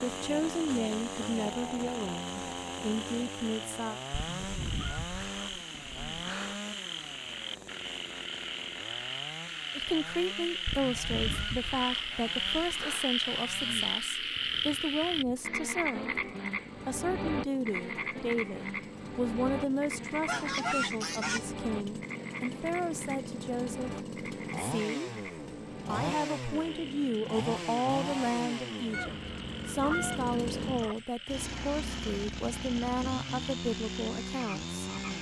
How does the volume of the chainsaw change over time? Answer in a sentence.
The volume of the chainsaw goes down, then up.